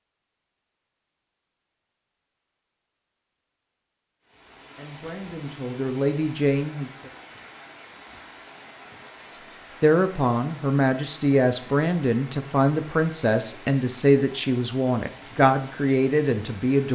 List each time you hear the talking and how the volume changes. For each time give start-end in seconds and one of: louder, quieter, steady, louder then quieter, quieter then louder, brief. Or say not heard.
4.8-7.1 brief
9.8-16.9 steady.